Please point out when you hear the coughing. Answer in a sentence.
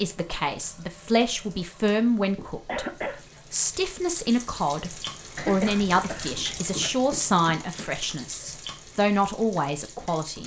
The coughing can be heard from 2.6 to 3.2 s and from 5.3 to 7.0 s.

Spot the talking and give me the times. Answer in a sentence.
You can hear the talking from 0.0 to 2.9 s and from 3.5 to 10.4 s.